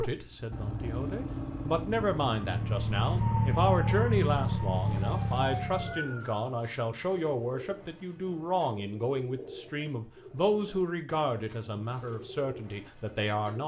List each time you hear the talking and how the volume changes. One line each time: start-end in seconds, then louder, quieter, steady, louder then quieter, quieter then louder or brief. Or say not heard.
0.0-13.6 steady.